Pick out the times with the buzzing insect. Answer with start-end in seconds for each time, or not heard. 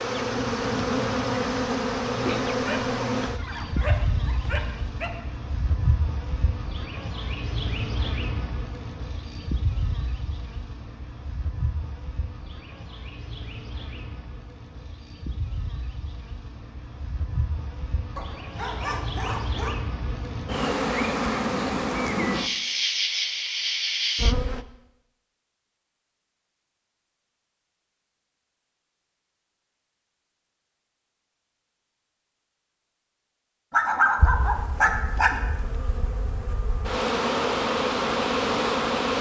0.0-24.6, 34.1-39.1.